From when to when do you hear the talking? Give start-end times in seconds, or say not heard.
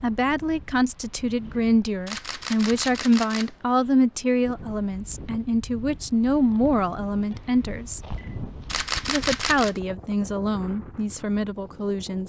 0.0-8.0, 9.1-12.2.